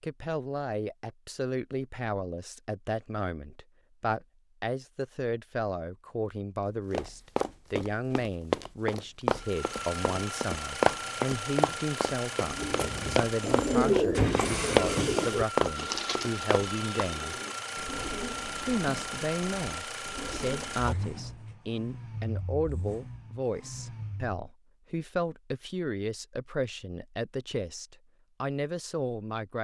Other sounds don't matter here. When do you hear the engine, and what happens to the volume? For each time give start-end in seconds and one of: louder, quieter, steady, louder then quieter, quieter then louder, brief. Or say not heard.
9.3-24.4 quieter.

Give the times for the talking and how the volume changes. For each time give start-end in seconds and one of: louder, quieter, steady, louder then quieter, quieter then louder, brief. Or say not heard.
0.0-17.4 steady
18.6-29.5 steady.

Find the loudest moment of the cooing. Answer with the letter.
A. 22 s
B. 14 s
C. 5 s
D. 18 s
B.